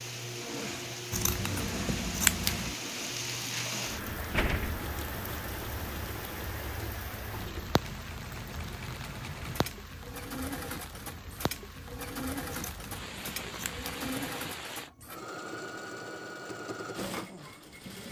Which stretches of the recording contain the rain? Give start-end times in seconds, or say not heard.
0.0-14.9.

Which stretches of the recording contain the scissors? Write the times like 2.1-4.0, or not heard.
1.1-2.8, 12.5-14.2.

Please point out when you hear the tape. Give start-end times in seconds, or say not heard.
not heard.